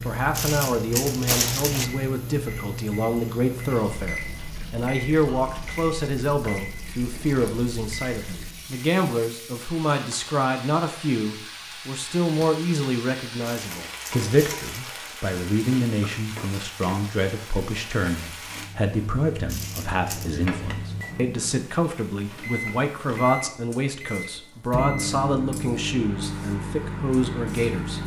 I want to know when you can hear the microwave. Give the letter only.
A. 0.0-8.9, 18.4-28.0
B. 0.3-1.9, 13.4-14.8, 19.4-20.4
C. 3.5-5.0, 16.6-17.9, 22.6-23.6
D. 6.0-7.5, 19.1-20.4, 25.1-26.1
A.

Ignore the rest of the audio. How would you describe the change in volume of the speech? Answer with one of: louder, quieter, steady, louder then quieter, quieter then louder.
steady.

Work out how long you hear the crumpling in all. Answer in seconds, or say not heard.
4 s.